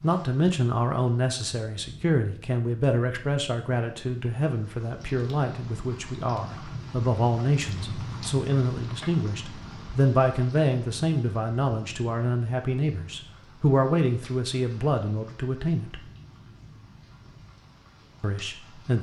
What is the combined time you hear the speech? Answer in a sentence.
The speech can be heard for 17 seconds in total.